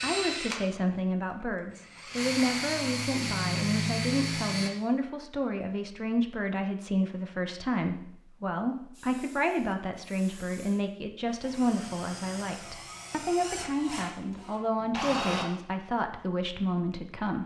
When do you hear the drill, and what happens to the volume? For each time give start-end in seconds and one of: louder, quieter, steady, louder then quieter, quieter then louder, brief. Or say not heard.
0.0-4.7 quieter then louder
8.9-15.4 louder.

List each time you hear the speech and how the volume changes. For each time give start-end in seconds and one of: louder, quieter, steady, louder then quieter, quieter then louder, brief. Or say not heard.
0.0-17.4 steady.